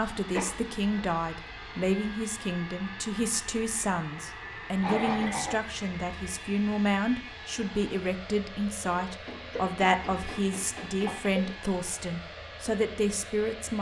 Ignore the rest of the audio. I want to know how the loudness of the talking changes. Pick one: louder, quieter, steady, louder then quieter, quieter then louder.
steady.